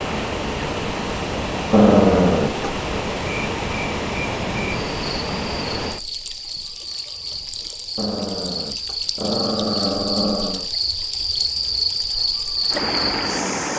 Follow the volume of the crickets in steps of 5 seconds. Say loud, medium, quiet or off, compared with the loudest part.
medium, medium, loud.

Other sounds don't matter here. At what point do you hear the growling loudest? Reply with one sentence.
The loudest moment of the growling is at 2 seconds.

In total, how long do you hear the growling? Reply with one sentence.
You can hear the growling for 4 seconds altogether.